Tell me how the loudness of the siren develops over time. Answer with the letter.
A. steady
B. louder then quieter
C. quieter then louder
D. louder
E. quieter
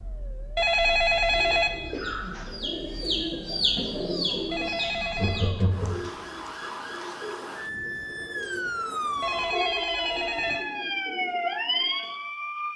D.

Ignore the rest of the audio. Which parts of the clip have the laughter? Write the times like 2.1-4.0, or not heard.
1.9-2.5, 5.1-6.0, 9.4-10.7.